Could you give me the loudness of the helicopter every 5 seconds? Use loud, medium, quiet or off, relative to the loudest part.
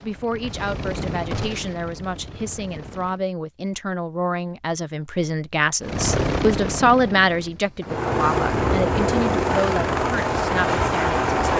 quiet, loud, loud.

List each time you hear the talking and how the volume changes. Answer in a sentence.
The talking can be heard from 0.0 to 11.5 s, getting louder then quieter.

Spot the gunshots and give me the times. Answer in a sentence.
The gunshots can be heard from 1.3 to 1.8 s.